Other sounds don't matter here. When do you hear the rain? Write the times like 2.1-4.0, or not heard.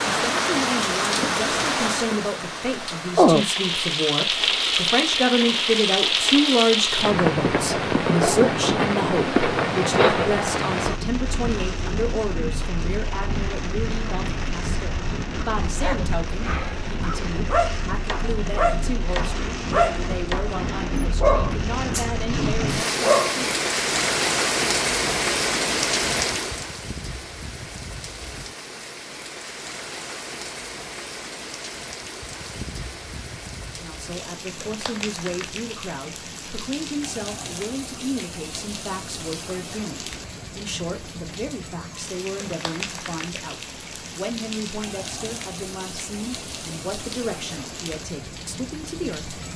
0.0-49.5.